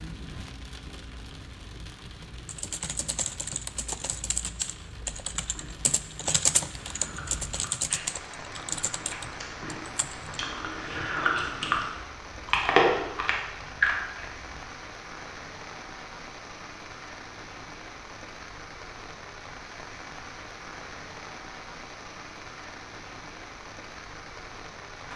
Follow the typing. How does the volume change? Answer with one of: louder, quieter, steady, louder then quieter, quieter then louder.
louder then quieter.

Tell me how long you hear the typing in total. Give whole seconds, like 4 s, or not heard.
8 s.